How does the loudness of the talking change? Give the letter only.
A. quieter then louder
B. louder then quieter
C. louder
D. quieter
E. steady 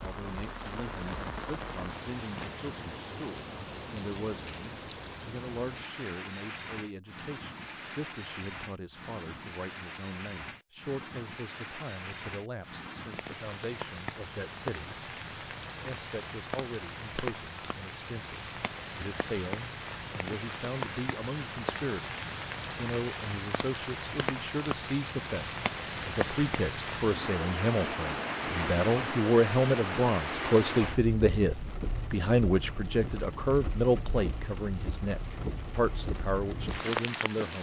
C.